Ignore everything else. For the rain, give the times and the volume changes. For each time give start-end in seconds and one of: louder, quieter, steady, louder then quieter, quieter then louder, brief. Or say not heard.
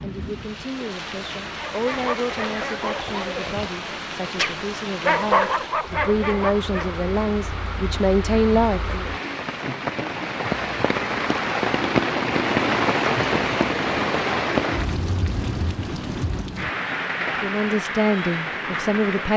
0.0-19.3 louder then quieter.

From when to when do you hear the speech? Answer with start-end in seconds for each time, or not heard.
0.0-9.1, 17.4-19.3.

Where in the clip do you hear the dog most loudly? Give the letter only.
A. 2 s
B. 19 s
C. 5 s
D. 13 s
C.